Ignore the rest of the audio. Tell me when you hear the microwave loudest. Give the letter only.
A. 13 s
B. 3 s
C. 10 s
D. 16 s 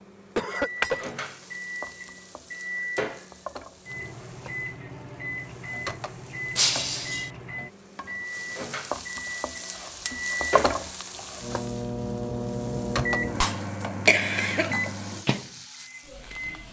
A.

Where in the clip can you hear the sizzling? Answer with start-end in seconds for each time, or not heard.
0.2-16.6.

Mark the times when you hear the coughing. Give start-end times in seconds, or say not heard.
0.3-1.1, 14.1-14.7.